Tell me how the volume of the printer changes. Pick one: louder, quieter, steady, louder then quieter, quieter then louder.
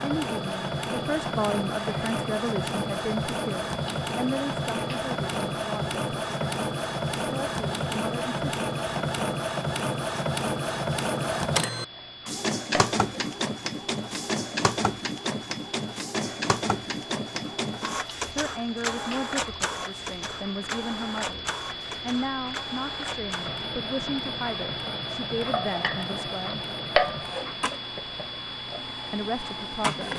quieter.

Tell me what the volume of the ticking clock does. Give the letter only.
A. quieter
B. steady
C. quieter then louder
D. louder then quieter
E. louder
E.